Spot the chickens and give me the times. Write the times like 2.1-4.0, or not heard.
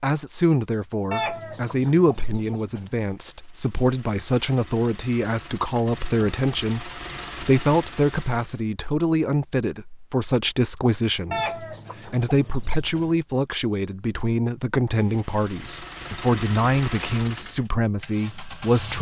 1.1-2.9, 11.3-13.2.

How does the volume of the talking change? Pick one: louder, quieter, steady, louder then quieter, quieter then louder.
steady.